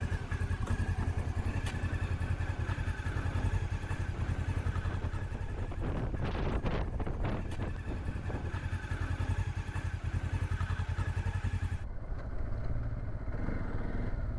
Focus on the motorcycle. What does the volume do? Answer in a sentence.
The loudness of the motorcycle goes down, then up.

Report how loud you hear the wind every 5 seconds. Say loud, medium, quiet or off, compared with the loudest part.
medium, loud, off.